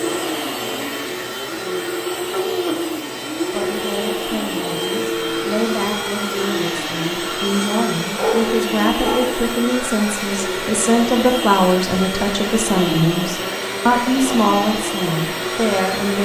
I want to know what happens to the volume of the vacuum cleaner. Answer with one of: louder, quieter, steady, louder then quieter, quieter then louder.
steady.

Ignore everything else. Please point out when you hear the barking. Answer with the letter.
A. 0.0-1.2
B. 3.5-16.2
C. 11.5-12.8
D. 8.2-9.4
D.